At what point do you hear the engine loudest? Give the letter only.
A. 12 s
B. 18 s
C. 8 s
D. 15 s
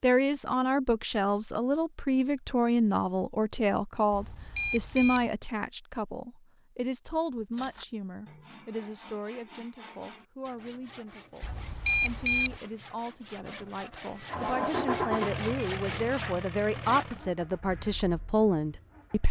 D.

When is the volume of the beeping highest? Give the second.
12 s.